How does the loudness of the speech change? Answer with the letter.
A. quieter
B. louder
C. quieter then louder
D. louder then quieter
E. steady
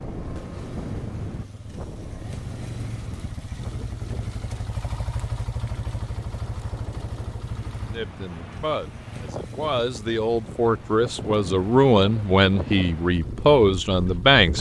B.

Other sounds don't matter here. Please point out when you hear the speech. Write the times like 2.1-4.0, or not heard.
7.9-14.5.